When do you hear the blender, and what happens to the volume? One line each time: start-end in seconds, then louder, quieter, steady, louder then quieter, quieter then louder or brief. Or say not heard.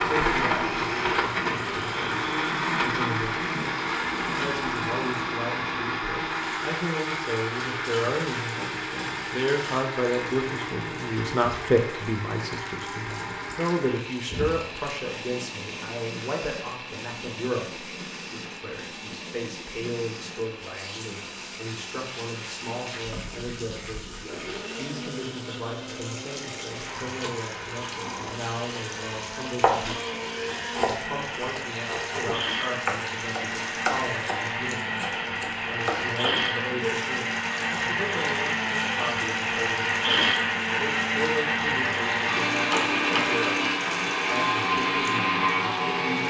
0.0-46.2 quieter then louder.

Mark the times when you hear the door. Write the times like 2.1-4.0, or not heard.
42.7-43.4.